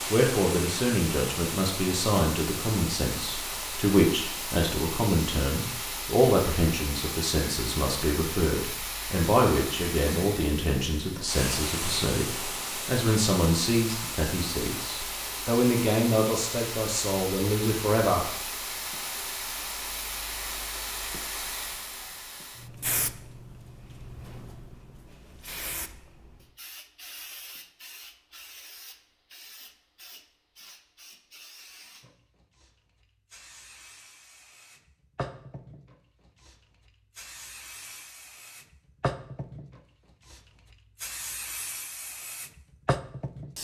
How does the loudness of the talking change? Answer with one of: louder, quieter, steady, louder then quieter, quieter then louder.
steady.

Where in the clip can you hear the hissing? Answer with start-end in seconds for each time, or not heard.
0.0-43.5.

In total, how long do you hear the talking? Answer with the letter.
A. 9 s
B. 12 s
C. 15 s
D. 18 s
D.